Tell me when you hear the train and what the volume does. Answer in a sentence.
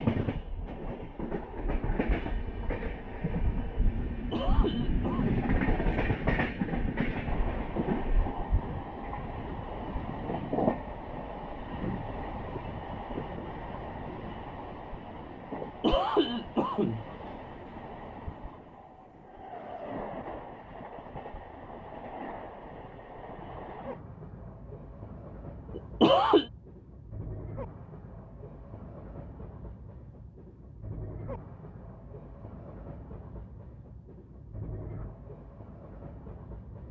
You can hear the train from 0.0 to 36.8 s, getting quieter.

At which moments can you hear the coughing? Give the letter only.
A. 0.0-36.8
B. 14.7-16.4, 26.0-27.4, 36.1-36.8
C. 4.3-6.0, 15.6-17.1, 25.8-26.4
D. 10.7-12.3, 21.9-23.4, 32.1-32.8
C.